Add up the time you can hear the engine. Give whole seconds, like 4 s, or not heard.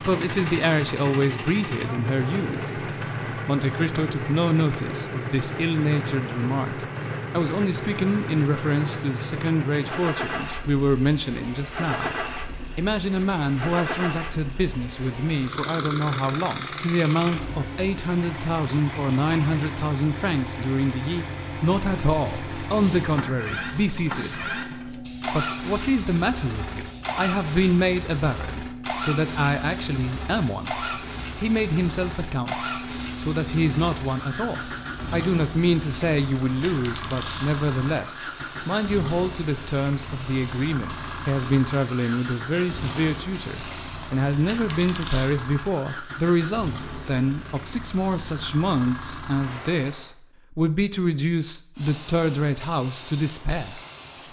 50 s.